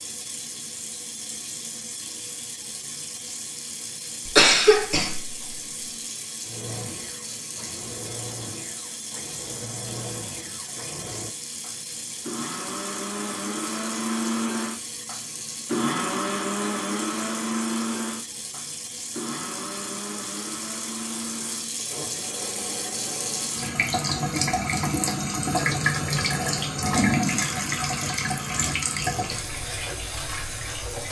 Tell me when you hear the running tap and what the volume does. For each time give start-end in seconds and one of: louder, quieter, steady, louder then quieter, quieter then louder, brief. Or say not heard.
0.0-31.0 louder.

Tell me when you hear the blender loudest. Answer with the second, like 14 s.
16 s.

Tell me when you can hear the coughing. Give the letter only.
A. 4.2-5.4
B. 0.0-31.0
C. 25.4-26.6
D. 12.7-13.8
A.